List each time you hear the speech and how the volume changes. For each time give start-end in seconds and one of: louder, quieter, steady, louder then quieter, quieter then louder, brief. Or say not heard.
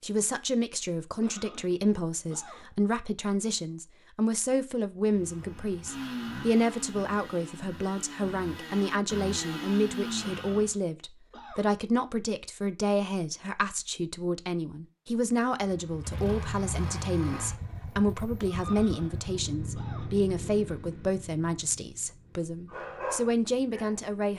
0.0-24.3 steady.